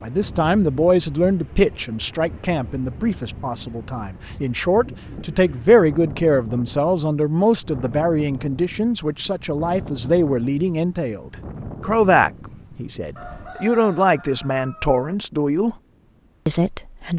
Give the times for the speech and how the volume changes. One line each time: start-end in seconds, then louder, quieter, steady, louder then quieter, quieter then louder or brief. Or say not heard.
0.0-15.8 steady
16.4-17.1 brief.